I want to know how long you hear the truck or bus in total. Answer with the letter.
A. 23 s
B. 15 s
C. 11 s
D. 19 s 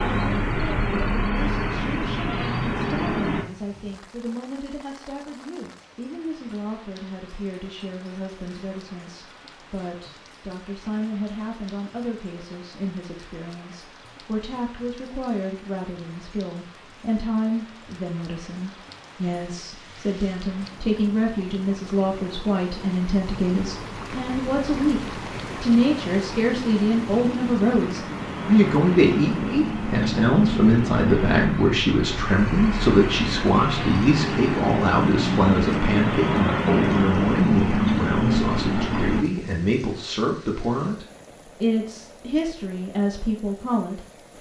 D.